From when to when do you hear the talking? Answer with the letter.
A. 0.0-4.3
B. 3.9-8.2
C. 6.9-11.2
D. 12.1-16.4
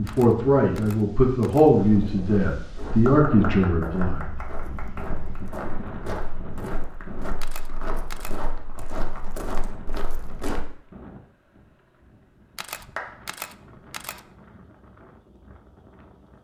A.